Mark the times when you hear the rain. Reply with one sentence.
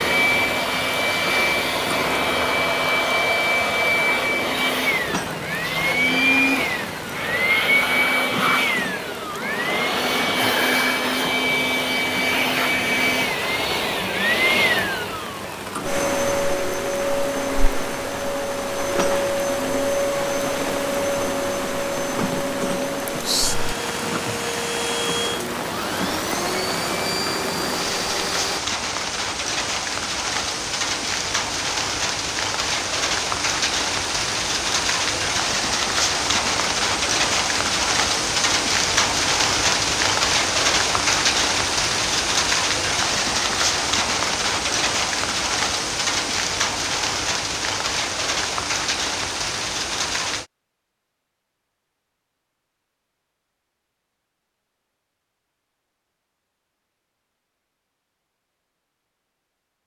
The rain can be heard from 0.0 to 50.5 s.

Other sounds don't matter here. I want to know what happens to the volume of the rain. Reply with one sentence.
The volume of the rain goes up.